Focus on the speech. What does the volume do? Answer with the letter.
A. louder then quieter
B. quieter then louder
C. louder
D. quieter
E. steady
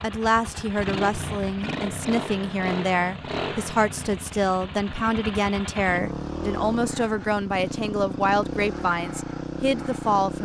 E.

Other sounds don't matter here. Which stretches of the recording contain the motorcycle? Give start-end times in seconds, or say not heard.
0.0-10.4.